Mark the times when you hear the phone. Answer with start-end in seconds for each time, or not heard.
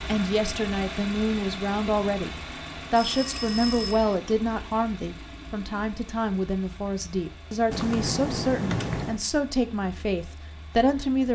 3.0-4.2, 7.7-9.2.